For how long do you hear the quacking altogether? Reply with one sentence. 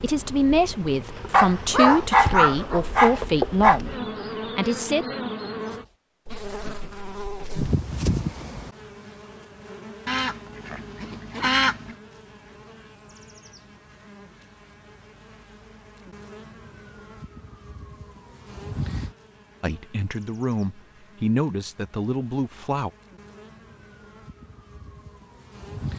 You can hear the quacking for 2 seconds altogether.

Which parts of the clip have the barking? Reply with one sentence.
You can hear the barking from 1.3 to 3.8 s.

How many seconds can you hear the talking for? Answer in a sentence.
You can hear the talking for 8 seconds altogether.